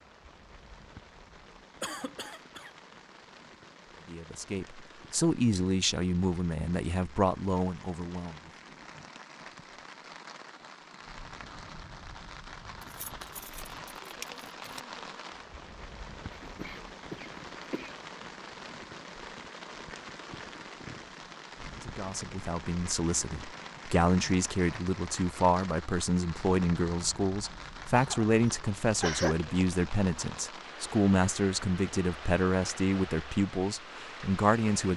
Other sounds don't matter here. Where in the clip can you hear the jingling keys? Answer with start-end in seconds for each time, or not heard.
12.8-14.8.